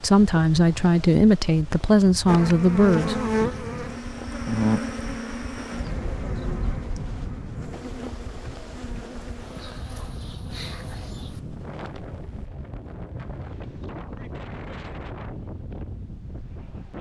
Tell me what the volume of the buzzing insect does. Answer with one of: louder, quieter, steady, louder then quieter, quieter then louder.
quieter.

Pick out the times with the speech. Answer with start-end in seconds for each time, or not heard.
0.0-3.2.